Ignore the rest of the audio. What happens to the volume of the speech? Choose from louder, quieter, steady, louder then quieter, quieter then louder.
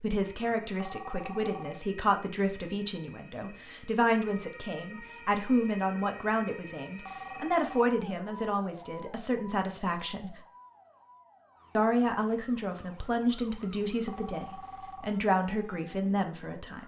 steady.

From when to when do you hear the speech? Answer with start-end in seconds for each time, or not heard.
0.0-10.4, 11.8-16.8.